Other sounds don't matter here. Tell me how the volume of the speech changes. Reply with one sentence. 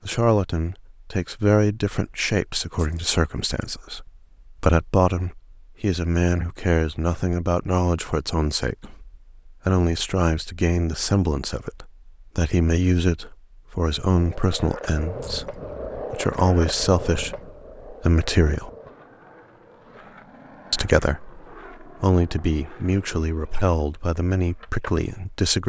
The loudness of the speech stays about the same.